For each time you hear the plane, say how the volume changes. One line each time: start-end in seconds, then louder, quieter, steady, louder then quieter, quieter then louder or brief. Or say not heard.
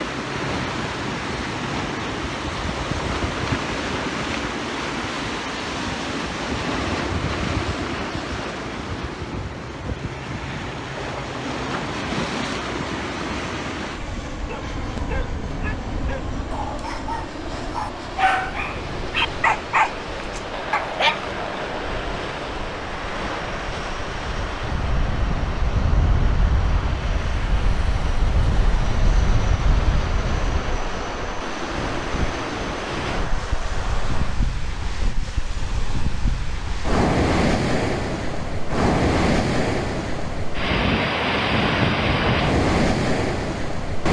0.0-34.5 steady.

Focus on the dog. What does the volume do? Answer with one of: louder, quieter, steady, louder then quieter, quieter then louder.
louder.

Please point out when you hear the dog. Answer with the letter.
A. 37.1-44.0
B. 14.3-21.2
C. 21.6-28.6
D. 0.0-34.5
B.